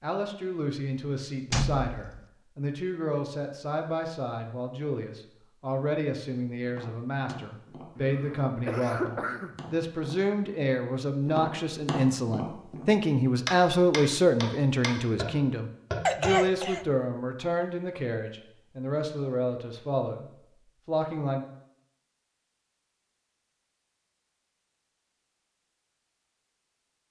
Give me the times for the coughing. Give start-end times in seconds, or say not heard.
8.0-9.8, 16.1-16.9.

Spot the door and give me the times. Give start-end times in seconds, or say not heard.
1.5-2.2.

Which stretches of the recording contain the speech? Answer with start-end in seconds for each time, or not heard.
0.0-21.4.